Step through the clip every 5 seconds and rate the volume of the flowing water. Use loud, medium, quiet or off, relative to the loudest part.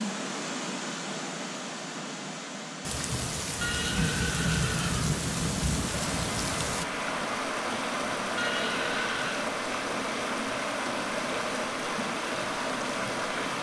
medium, loud, loud.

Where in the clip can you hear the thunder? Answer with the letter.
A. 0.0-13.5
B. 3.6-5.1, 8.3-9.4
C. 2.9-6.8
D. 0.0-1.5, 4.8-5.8
C.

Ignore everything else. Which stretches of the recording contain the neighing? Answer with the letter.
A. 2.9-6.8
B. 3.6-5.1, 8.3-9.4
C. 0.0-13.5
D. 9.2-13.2
B.